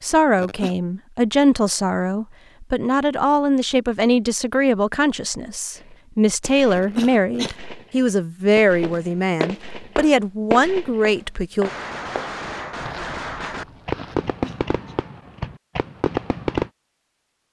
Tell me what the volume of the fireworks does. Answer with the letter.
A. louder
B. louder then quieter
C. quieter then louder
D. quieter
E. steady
A.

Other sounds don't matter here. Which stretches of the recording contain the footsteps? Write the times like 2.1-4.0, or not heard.
8.8-14.3.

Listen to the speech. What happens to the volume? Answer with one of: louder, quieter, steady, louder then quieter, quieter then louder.
steady.